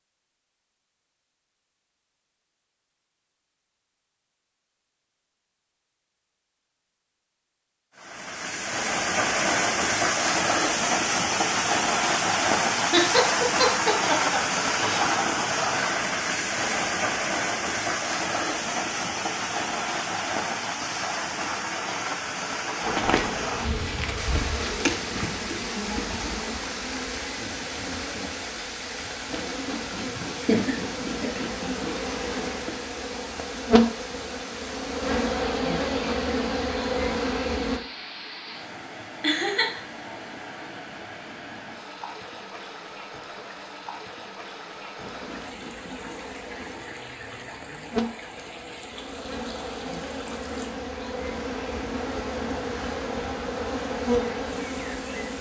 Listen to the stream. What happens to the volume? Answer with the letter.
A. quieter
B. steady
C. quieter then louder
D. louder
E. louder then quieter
A.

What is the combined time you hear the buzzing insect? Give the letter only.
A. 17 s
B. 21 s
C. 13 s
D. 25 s
D.